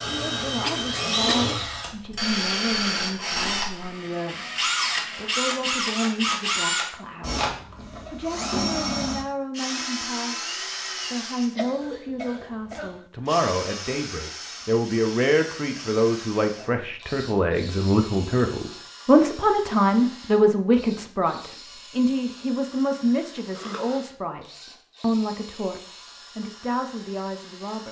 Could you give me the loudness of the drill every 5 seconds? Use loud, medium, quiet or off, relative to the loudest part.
loud, loud, medium, quiet, quiet, quiet.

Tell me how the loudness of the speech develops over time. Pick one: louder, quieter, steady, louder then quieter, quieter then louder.
louder then quieter.